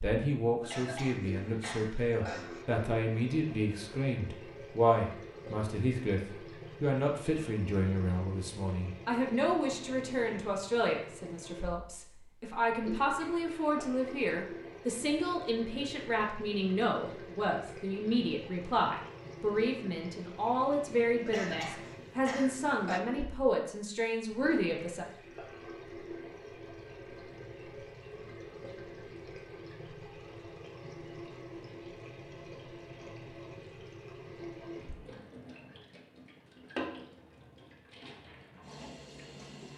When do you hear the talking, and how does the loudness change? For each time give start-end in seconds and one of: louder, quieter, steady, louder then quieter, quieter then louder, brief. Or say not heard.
0.0-25.1 steady.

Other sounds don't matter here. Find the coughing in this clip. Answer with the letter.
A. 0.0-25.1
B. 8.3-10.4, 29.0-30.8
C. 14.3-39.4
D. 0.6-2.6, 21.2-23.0
D.